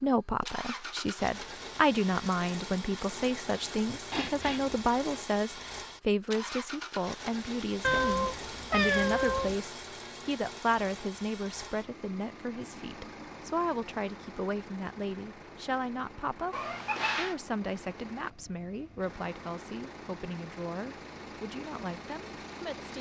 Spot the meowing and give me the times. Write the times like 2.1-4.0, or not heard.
4.1-4.8, 7.8-9.6, 16.5-17.4.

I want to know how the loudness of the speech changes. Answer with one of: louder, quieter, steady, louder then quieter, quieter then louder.
quieter.